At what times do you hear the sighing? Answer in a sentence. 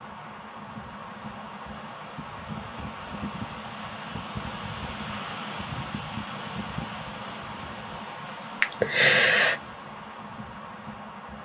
The sighing can be heard from 8.6 to 9.6 s.